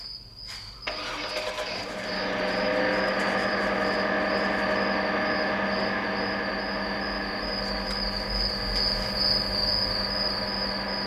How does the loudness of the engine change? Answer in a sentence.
The loudness of the engine goes up, then down.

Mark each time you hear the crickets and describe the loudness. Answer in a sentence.
You can hear the crickets from 0.0 to 11.0 s, getting louder.